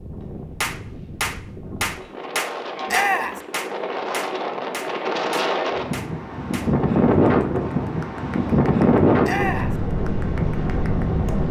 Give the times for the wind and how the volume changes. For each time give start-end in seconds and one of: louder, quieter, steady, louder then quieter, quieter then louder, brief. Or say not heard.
0.0-11.4 louder.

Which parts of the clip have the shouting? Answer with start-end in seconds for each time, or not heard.
2.9-3.4, 9.2-9.8.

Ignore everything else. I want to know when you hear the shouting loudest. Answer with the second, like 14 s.
3 s.